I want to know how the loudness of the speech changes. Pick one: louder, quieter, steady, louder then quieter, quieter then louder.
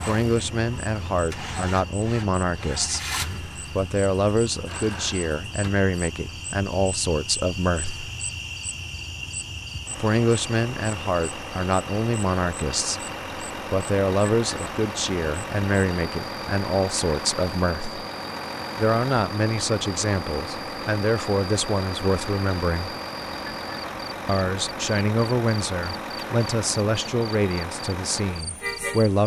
steady.